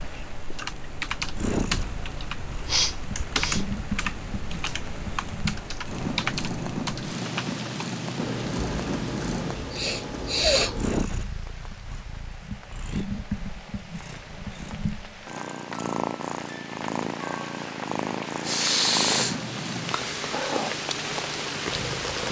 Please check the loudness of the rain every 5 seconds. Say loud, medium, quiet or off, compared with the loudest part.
medium, medium, quiet, medium, loud.